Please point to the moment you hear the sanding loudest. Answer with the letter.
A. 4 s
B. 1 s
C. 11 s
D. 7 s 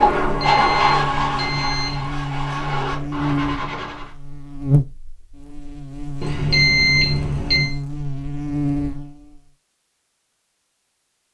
B.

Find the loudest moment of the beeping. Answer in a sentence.
The volume of the beeping peaks at 7 seconds.